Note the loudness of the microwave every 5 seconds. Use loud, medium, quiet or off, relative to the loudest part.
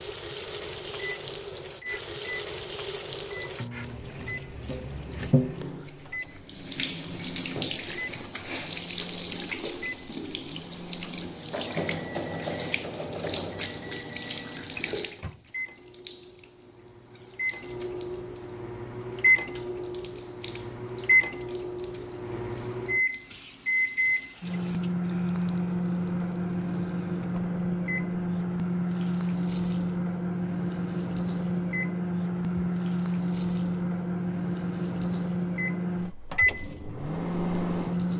quiet, quiet, quiet, loud, loud, loud, loud, loud.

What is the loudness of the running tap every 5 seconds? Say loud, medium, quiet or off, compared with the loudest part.
medium, loud, loud, quiet, quiet, quiet, quiet, quiet.